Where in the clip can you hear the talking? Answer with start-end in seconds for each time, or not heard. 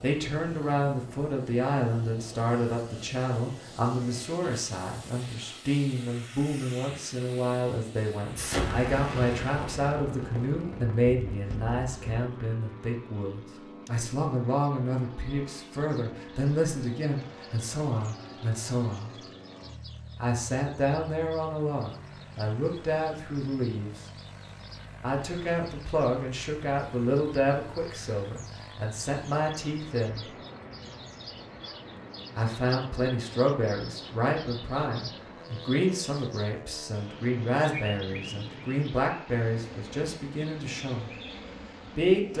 0.0-19.2, 20.2-24.1, 25.0-30.3, 32.4-41.1, 41.9-42.3.